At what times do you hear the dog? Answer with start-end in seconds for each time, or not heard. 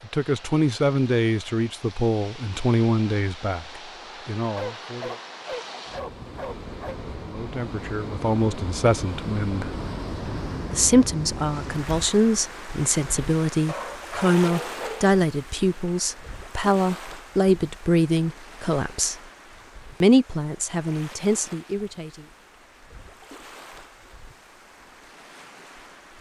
4.5-7.0, 13.7-15.2.